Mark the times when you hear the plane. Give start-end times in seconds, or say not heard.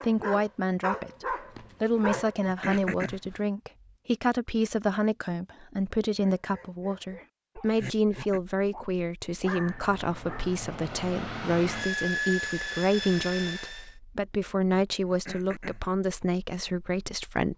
9.3-13.9.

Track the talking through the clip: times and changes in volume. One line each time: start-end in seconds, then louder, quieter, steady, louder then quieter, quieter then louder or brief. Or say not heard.
0.0-17.5 steady.